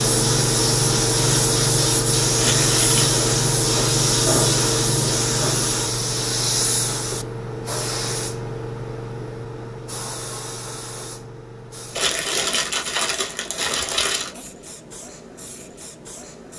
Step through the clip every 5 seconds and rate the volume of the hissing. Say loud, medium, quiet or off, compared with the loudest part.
loud, medium, quiet, quiet.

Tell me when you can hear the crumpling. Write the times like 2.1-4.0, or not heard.
2.4-3.1, 11.9-14.3.